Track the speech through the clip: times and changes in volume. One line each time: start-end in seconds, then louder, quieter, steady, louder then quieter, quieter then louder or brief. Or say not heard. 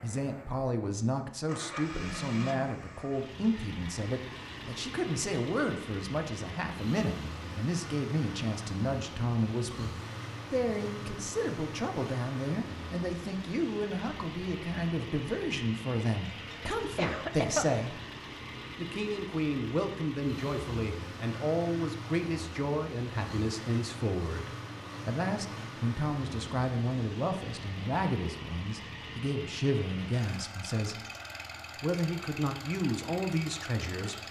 0.0-18.0 steady
18.8-31.0 steady
31.8-34.2 brief.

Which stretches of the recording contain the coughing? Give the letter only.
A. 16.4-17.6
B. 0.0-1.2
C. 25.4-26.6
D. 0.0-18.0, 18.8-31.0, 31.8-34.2
A.